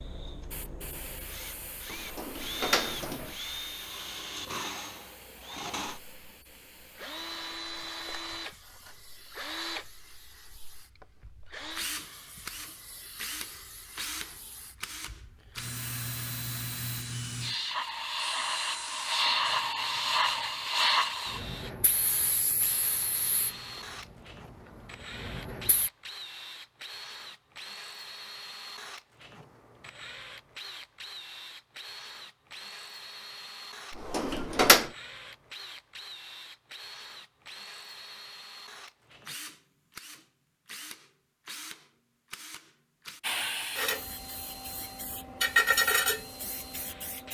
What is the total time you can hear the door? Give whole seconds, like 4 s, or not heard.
2 s.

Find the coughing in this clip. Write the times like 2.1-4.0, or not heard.
not heard.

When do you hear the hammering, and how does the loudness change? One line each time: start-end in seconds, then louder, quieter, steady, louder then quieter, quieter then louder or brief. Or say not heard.
not heard.